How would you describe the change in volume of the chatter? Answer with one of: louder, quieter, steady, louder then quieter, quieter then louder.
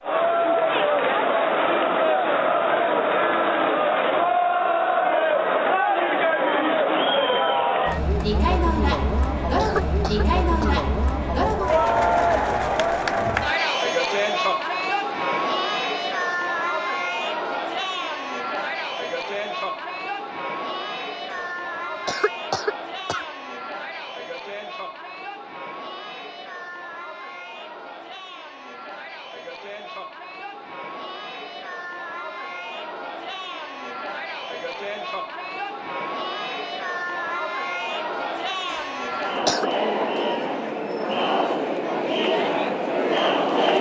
quieter then louder.